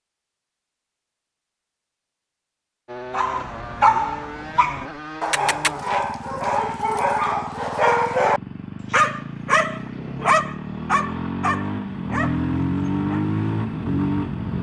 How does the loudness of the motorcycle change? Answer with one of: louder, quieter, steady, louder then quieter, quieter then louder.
louder.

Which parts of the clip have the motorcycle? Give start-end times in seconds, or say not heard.
2.9-14.5.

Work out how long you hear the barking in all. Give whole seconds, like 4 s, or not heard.
10 s.